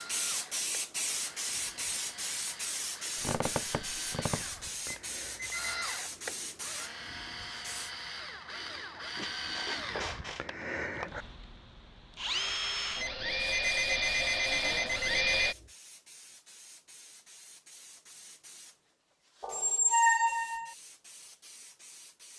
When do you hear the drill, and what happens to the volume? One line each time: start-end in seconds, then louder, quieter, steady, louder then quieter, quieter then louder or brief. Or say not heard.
0.0-15.6 louder.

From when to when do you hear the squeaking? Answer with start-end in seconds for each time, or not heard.
3.2-5.0, 9.2-10.4, 19.4-20.7.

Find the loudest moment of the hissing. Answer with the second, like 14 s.
1 s.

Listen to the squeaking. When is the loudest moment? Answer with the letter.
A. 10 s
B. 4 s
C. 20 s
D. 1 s
C.